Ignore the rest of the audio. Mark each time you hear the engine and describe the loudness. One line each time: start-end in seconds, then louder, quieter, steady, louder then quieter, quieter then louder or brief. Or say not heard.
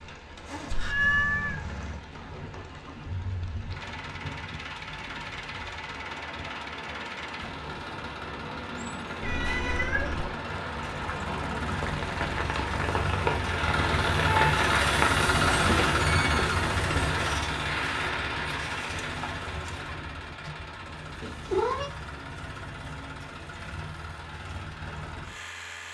0.1-25.9 louder then quieter.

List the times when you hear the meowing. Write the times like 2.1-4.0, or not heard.
0.8-1.6, 9.2-10.3, 21.2-21.9.